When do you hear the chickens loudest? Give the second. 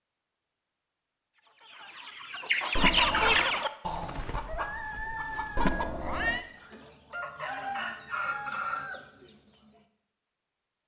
3 s.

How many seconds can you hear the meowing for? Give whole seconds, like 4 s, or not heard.
2 s.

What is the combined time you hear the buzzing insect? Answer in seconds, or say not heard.
not heard.